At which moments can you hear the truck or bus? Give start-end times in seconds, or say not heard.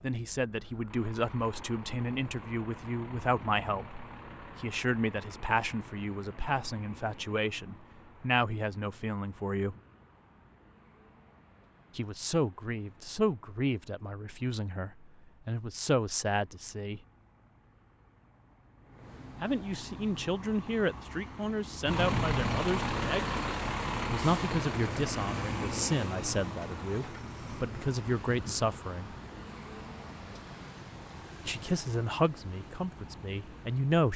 0.0-34.1.